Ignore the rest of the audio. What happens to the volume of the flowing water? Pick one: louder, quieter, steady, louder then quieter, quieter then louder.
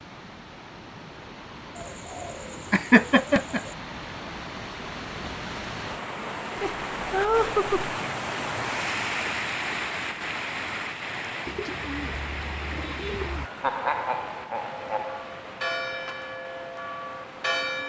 louder then quieter.